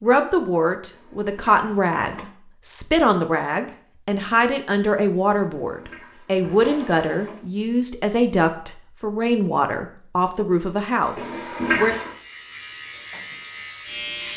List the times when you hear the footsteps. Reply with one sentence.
The footsteps can't be heard in this clip.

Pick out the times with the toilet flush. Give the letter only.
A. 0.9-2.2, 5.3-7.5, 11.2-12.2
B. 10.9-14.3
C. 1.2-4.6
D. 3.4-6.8
A.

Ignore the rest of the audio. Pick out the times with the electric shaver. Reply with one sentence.
You can hear the electric shaver from 10.9 to 14.3 s.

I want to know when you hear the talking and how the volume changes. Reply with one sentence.
The talking can be heard from 0.0 to 11.9 s, at a steady volume.